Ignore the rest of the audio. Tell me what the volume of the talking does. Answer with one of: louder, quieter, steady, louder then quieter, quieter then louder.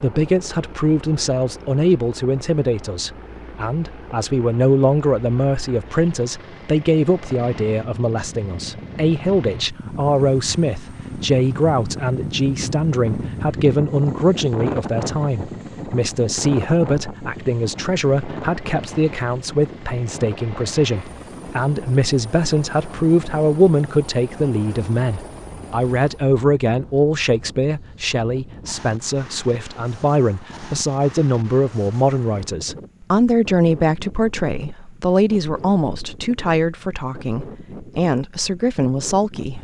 steady.